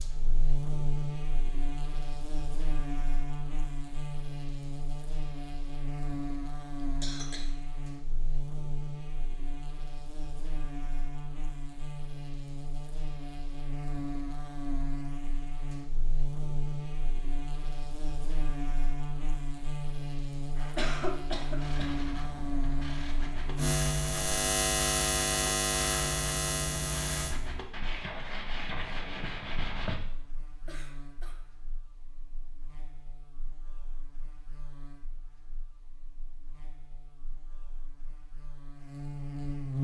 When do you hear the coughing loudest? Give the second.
21 s.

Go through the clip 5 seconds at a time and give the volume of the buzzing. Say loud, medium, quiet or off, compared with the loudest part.
medium, medium, medium, medium, loud, loud, quiet, medium.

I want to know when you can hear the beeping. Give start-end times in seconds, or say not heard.
not heard.